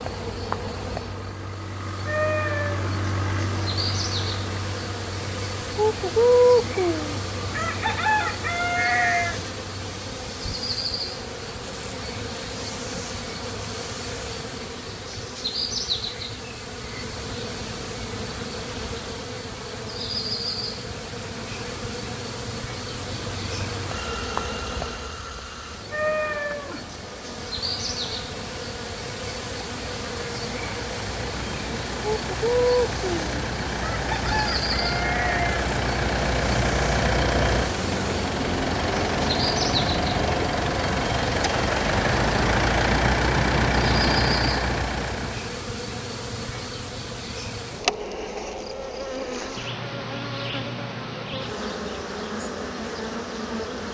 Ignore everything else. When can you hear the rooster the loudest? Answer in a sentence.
The loudest moment of the rooster is at 6 seconds.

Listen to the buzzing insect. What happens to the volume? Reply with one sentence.
The loudness of the buzzing insect stays about the same.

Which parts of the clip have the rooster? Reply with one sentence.
The rooster can be heard from 5.8 to 9.4 s and from 32.2 to 35.6 s.